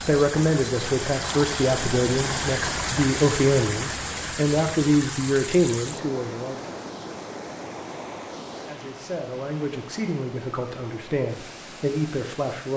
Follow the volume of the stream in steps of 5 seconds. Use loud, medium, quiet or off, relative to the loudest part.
loud, medium, quiet.